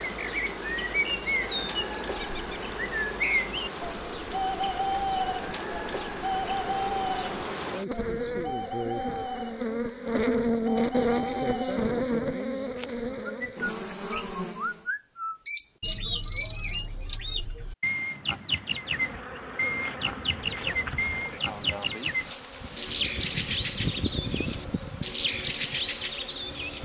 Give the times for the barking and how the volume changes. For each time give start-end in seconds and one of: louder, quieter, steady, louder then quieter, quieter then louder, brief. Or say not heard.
not heard.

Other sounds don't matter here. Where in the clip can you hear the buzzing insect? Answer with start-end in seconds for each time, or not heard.
0.0-14.9, 18.6-26.7.